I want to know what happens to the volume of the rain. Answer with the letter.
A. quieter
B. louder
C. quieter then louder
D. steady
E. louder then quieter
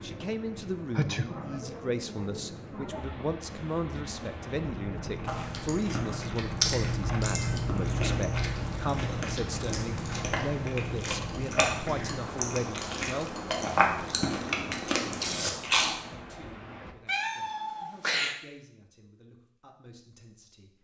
E.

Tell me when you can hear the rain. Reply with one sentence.
You can hear the rain from 0.0 to 16.9 s.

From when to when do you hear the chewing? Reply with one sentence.
The chewing can be heard from 5.2 to 15.9 s.